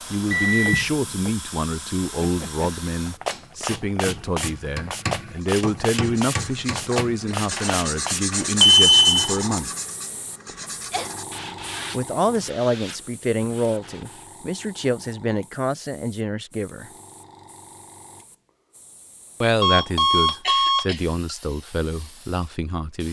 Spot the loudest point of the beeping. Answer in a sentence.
The volume of the beeping peaks at 9 seconds.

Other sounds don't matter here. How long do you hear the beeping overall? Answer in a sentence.
You can hear the beeping for 3 seconds altogether.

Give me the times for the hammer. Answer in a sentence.
The hammer can be heard from 3.3 to 8.6 s.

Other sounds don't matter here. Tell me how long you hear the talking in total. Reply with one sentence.
The talking can be heard for 18 seconds in total.